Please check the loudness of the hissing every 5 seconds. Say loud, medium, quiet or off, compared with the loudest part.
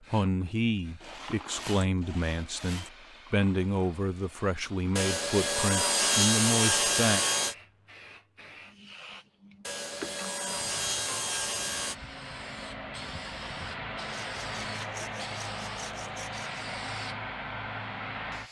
quiet, quiet, loud, loud.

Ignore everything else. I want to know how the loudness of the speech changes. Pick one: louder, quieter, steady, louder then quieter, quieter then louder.
steady.